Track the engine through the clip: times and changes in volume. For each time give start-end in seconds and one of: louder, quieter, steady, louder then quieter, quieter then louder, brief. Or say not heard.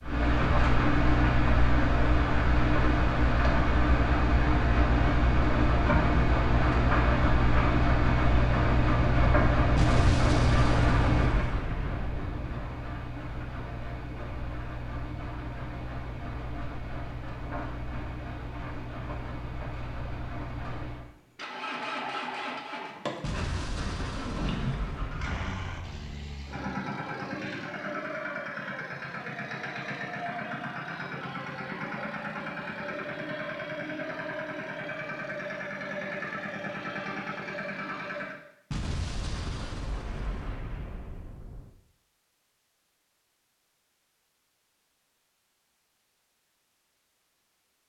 0.0-38.4 quieter.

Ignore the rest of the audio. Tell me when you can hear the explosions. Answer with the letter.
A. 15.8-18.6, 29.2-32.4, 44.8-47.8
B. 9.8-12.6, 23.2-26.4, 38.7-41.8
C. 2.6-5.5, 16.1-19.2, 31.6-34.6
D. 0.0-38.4
B.